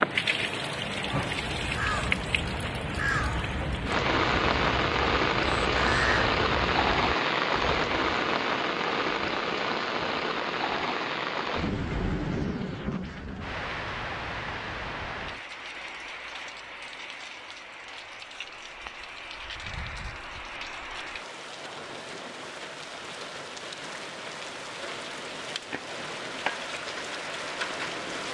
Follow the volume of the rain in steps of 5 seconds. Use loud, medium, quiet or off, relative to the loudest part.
loud, loud, medium, quiet, quiet, medium.